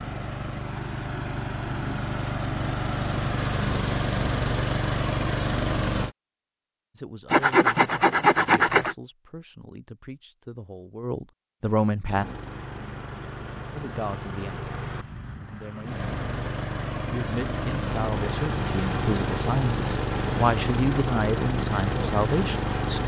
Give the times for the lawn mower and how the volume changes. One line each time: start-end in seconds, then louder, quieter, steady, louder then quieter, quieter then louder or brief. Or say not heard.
0.0-6.2 louder
12.1-23.0 louder.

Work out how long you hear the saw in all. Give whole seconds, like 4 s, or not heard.
2 s.